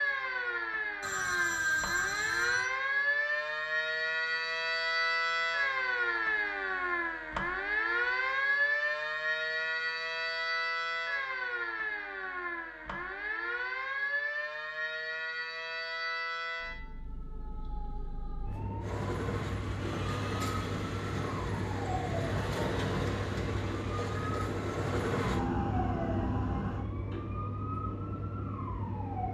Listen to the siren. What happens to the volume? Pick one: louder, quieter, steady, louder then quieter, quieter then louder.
quieter.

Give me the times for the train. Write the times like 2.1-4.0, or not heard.
18.8-26.9.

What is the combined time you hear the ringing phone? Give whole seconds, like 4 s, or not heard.
2 s.